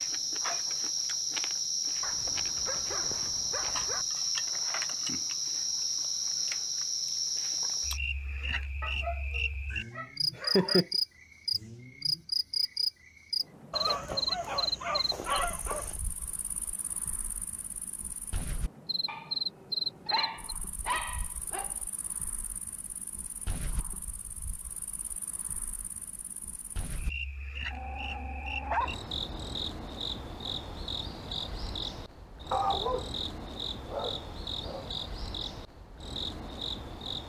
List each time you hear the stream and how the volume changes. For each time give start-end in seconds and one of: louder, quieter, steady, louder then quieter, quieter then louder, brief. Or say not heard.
not heard.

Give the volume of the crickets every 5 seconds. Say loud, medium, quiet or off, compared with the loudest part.
loud, loud, loud, medium, quiet, medium, medium, medium.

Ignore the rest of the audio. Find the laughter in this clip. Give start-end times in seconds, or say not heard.
10.3-10.8.